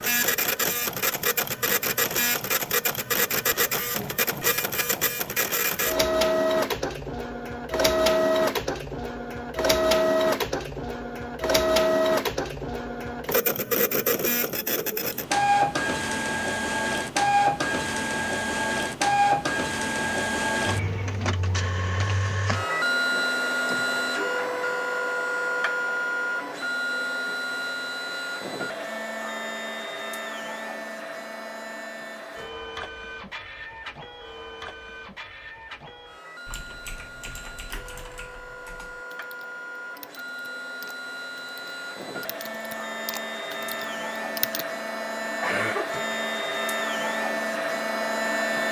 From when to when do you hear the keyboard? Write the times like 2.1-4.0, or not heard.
36.5-44.6.